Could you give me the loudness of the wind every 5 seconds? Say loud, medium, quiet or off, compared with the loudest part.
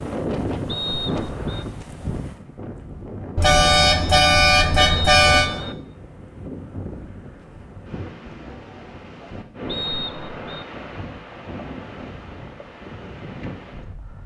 loud, medium, medium.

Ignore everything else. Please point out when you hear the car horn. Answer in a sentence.
You can hear the car horn from 3.4 to 5.5 s.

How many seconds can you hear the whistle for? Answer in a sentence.
The whistle can be heard for 3 seconds in total.